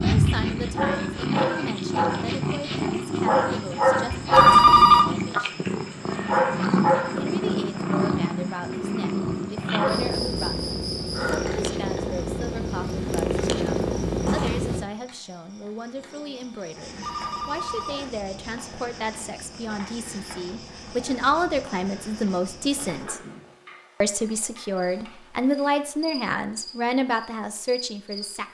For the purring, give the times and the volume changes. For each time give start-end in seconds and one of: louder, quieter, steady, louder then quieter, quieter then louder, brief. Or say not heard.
0.0-14.8 steady.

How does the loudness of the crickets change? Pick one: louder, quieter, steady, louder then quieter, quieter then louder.
quieter.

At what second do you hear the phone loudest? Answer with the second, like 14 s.
5 s.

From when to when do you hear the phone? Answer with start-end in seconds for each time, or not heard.
4.3-5.0, 17.0-18.1.